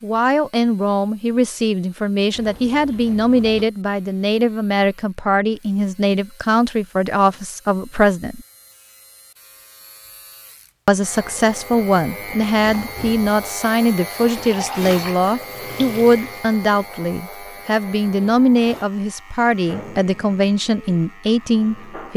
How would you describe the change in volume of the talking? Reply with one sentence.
The volume of the talking stays about the same.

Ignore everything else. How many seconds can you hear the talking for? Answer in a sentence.
The talking can be heard for 20 seconds in total.